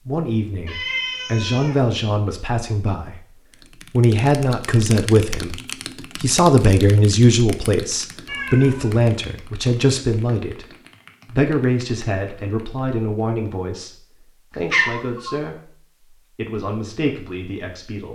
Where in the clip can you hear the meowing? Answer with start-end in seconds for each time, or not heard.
0.7-1.9, 8.2-9.0, 14.5-15.3.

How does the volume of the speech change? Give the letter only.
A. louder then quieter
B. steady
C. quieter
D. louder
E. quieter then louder
A.